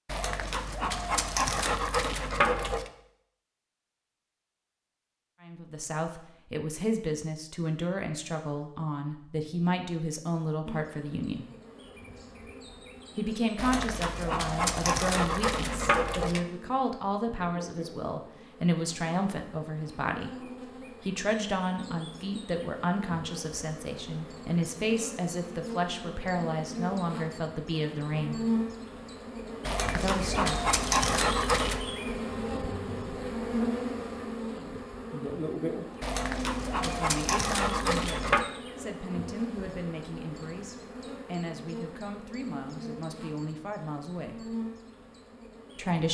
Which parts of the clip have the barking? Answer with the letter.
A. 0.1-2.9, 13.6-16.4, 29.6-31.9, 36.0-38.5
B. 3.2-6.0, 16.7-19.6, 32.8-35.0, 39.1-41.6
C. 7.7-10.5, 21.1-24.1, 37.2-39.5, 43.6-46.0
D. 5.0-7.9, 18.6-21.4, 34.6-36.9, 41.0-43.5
A.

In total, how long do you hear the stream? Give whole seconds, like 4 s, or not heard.
not heard.